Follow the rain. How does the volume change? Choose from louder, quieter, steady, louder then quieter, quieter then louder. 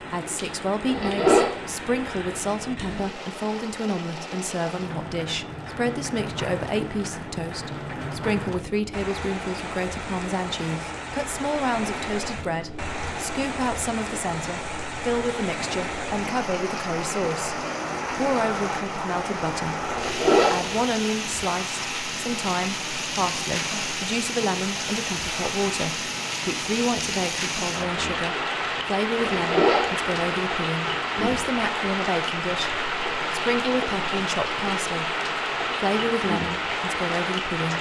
louder.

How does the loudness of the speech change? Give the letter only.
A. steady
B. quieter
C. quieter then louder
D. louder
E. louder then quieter
A.